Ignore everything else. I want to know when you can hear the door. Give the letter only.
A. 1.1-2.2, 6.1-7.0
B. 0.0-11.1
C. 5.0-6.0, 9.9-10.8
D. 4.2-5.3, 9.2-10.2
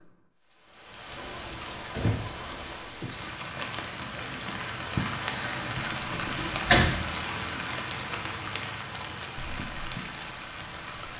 A.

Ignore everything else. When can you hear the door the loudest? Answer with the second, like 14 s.
7 s.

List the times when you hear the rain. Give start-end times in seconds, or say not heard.
0.0-11.1.